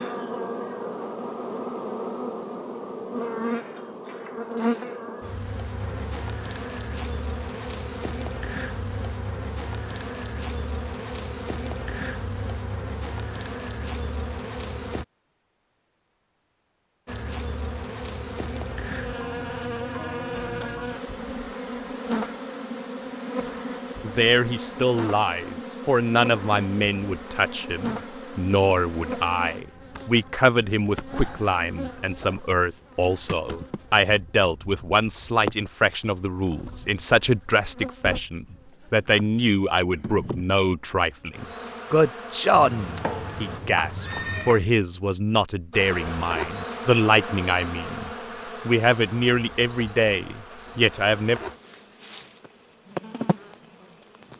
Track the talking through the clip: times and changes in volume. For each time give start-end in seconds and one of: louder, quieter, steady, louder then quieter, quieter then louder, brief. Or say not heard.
24.0-51.4 steady.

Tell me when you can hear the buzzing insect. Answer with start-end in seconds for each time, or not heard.
0.0-15.1, 17.1-43.6, 45.7-54.3.